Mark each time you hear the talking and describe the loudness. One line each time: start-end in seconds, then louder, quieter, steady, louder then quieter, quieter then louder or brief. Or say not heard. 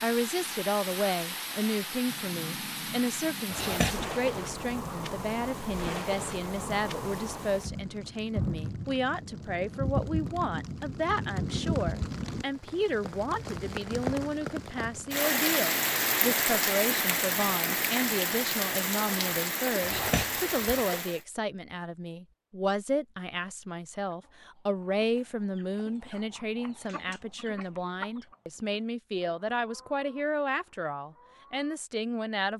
0.0-32.5 steady.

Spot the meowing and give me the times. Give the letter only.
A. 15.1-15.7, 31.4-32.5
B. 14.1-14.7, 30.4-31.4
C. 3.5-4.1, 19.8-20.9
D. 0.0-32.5
C.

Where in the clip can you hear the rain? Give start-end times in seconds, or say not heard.
0.0-21.2.